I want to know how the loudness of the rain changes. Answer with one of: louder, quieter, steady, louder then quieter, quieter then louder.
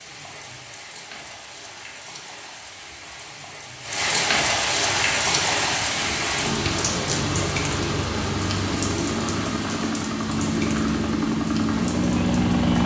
louder then quieter.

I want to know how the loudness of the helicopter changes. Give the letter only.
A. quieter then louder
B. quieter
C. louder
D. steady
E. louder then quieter
C.